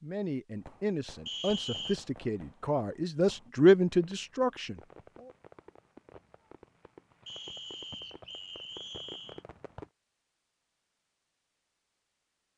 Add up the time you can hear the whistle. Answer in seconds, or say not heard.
3 s.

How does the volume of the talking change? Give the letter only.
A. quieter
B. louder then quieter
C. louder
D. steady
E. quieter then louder
C.